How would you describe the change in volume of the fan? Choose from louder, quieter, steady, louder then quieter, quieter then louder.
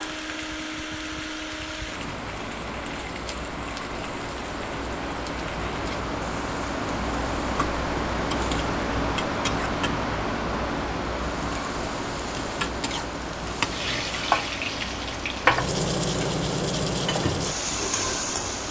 louder then quieter.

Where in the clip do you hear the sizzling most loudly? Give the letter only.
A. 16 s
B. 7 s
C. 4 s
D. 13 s
A.